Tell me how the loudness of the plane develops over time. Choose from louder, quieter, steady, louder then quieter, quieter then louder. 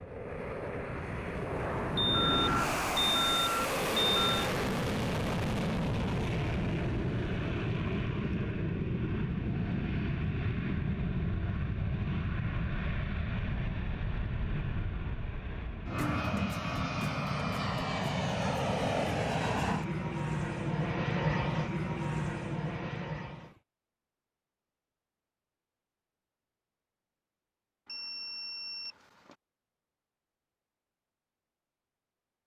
steady.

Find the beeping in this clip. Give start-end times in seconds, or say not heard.
1.9-4.5, 27.9-29.4.